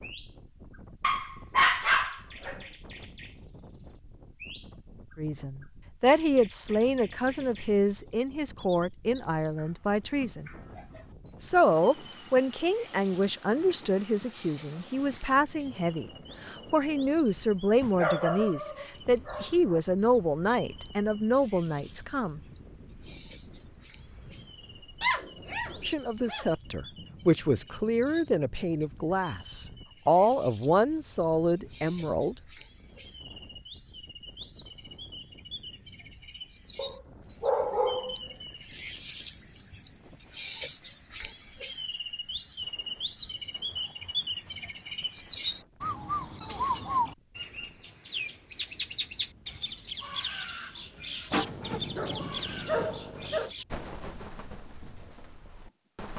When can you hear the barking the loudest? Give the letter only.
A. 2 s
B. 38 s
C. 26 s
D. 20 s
A.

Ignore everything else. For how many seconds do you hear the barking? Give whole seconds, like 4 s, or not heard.
9 s.